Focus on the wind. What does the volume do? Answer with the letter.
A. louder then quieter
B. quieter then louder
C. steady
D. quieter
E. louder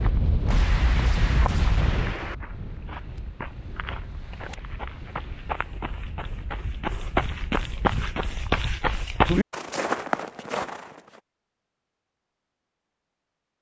D.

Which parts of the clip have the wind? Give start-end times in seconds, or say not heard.
0.0-8.3.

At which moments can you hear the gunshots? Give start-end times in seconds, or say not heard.
0.5-2.4.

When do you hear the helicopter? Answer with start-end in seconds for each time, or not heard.
not heard.